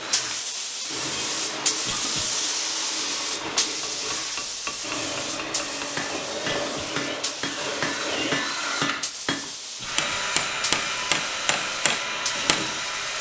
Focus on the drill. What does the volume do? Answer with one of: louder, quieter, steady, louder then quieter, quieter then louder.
louder.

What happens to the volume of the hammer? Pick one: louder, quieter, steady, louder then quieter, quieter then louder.
louder.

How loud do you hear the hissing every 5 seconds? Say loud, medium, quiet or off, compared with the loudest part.
loud, medium, medium.